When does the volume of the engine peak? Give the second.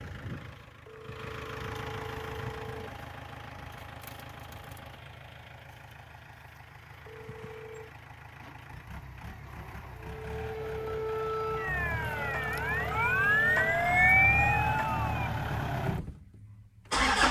17 s.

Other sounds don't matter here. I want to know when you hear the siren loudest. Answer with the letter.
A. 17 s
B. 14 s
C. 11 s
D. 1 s
B.